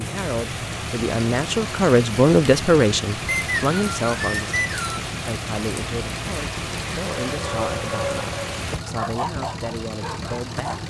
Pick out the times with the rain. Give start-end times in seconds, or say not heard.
0.0-8.8.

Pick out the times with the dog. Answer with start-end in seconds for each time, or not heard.
7.2-10.8.